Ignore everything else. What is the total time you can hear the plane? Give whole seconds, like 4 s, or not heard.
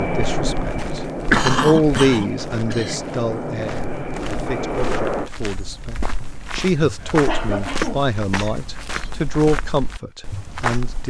5 s.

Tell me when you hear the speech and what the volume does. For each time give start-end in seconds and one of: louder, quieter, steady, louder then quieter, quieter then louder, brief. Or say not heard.
0.0-11.0 quieter then louder.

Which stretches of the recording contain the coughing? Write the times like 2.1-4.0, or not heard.
1.3-3.0, 7.0-8.1.